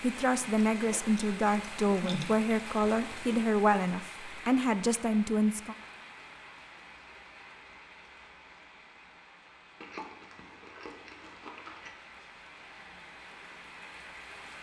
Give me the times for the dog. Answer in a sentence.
You can't hear the dog here.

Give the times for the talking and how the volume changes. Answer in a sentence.
You can hear the talking from 0.0 to 5.8 s, at a steady volume.